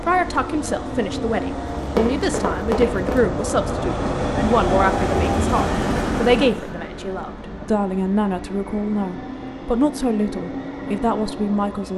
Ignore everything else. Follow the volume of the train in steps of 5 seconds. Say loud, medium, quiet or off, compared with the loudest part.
loud, loud, medium.